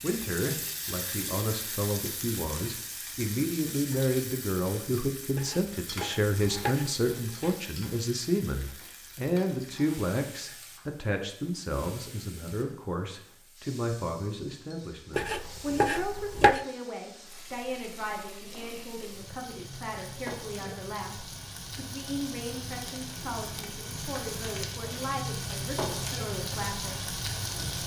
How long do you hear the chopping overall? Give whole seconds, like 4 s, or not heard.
4 s.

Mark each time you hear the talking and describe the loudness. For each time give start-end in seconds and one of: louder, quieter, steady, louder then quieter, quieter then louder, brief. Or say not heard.
0.0-27.8 quieter.